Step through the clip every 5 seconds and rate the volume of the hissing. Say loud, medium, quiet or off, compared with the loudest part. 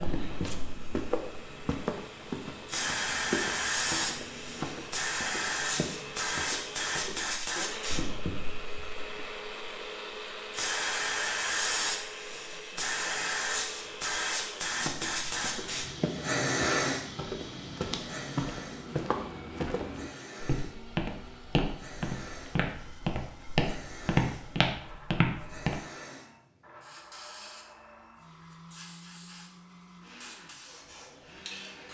loud, loud, loud, loud, quiet, quiet, quiet.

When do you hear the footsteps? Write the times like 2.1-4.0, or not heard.
0.0-7.3, 14.7-25.8.